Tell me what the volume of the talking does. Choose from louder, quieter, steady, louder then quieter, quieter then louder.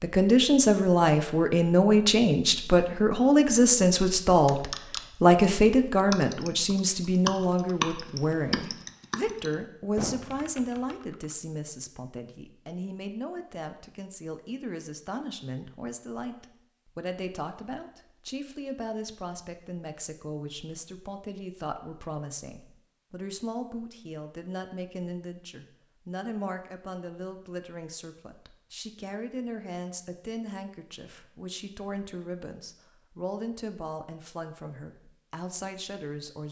quieter.